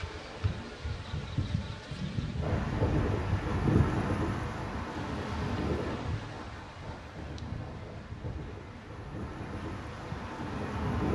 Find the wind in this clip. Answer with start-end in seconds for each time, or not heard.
2.4-11.1.